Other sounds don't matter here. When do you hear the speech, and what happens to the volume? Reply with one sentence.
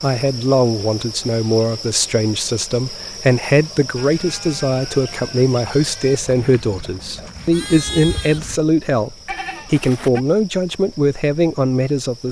The speech can be heard from 0.0 to 12.2 s, at a steady volume.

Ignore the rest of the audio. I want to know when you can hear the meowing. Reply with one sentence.
The meowing can't be heard in this clip.